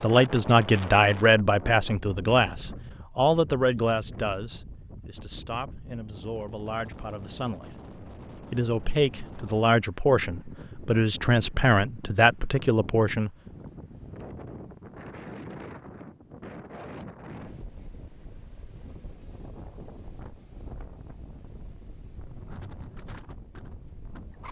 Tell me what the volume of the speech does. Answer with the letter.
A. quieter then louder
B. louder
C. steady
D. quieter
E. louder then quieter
A.